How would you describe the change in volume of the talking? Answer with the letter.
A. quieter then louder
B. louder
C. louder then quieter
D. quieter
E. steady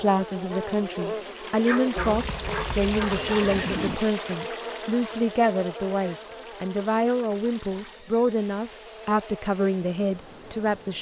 E.